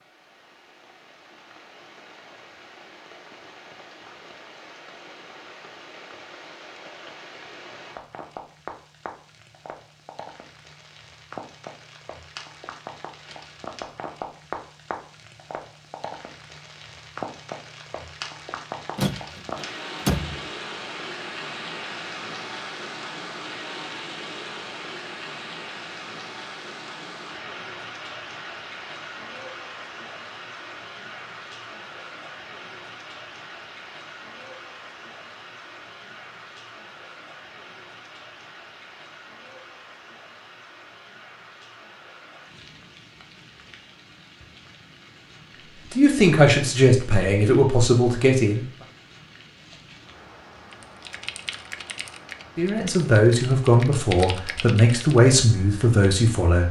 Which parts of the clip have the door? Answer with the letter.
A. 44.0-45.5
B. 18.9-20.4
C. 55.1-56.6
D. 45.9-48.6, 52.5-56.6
B.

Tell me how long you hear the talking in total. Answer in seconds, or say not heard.
7 s.